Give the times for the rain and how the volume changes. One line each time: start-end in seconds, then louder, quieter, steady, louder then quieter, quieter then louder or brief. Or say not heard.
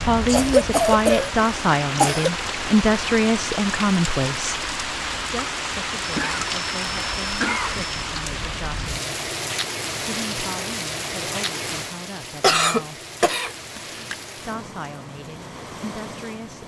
0.0-16.6 quieter.